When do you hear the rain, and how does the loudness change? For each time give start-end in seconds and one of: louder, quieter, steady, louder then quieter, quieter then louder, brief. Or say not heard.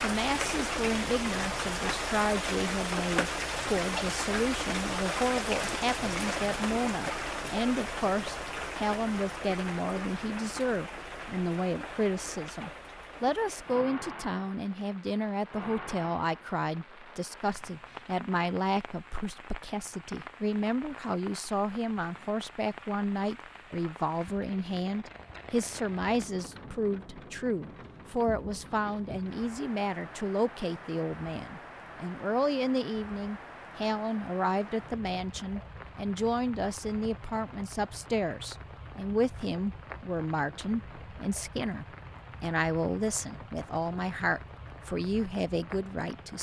0.0-46.3 quieter.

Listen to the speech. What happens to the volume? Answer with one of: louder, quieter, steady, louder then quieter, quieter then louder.
steady.